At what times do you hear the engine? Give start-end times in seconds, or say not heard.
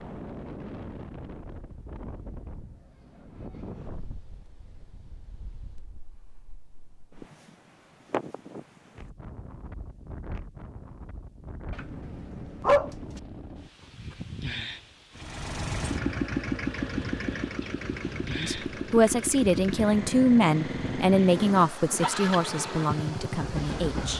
15.2-24.1.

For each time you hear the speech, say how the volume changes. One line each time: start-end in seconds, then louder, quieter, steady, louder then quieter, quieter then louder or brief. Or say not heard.
18.4-24.1 quieter.